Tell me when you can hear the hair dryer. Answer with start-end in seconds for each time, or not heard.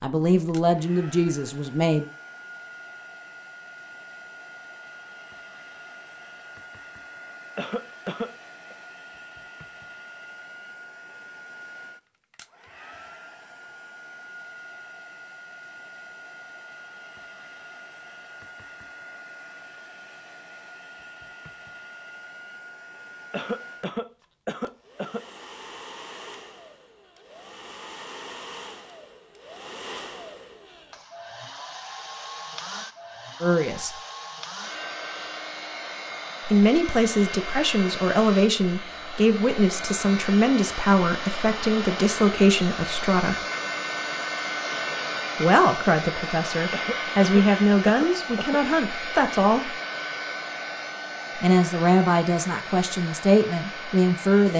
0.0-54.5.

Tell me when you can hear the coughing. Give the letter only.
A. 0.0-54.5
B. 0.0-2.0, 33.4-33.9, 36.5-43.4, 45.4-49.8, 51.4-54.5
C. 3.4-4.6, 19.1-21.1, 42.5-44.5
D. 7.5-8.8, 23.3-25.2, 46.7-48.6
D.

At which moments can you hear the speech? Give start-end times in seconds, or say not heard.
0.0-2.0, 33.4-33.9, 36.5-43.4, 45.4-49.8, 51.4-54.5.